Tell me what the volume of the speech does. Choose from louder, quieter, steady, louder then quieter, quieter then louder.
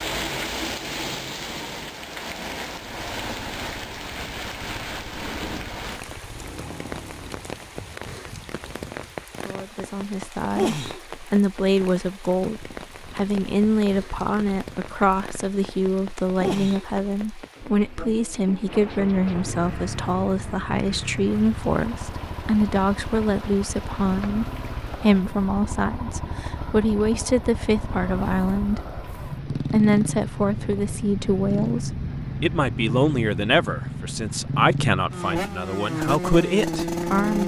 steady.